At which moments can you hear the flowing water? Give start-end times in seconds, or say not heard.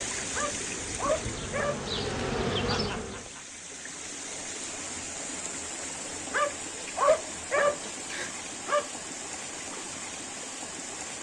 0.0-11.1.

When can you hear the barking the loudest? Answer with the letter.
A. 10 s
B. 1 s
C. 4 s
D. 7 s
D.